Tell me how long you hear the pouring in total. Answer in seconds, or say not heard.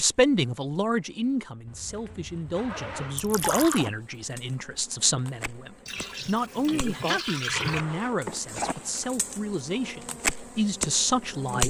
3 s.